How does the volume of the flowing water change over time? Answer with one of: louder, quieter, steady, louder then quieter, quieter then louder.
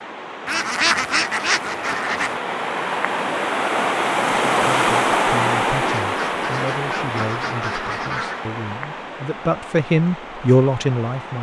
louder then quieter.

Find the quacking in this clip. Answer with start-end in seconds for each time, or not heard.
0.5-2.4, 5.9-8.4.